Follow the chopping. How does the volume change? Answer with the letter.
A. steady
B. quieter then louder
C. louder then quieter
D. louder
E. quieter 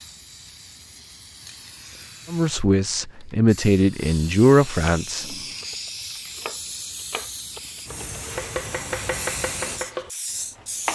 D.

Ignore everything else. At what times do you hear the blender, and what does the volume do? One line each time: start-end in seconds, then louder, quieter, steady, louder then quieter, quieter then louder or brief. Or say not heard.
not heard.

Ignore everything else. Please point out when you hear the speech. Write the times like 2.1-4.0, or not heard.
2.3-5.3.